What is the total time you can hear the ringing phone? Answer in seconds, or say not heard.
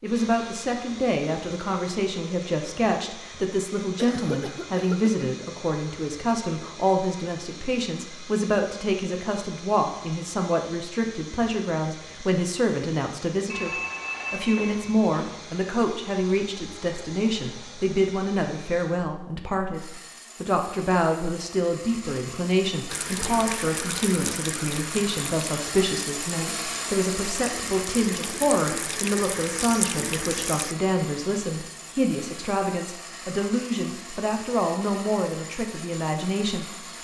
2 s.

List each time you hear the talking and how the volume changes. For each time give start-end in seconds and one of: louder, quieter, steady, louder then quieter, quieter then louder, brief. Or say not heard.
0.0-37.0 steady.